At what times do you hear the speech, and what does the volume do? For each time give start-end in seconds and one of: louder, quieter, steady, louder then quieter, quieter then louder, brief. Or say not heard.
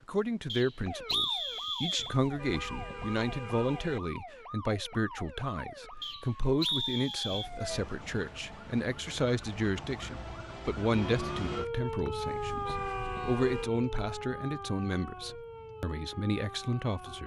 0.1-17.2 steady.